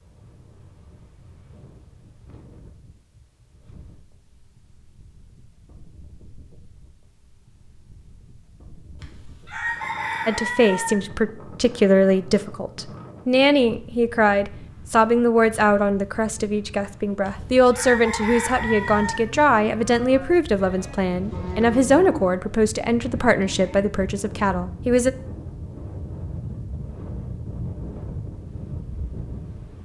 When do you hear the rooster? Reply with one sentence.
The rooster can be heard from 9.0 to 10.9 s and from 17.2 to 19.2 s.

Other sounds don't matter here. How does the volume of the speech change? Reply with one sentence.
The loudness of the speech stays about the same.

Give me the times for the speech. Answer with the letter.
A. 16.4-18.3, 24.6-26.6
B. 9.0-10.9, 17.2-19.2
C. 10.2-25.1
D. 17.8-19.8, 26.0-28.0
C.